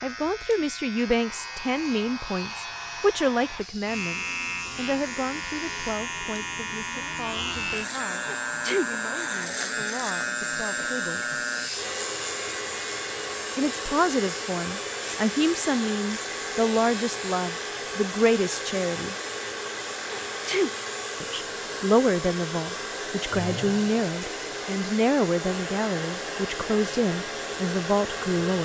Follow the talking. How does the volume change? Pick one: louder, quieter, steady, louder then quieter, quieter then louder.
quieter then louder.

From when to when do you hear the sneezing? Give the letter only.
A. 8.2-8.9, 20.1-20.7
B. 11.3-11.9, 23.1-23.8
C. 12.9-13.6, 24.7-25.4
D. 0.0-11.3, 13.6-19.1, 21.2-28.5
A.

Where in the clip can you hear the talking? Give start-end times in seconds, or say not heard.
0.0-11.3, 13.6-19.1, 21.2-28.5.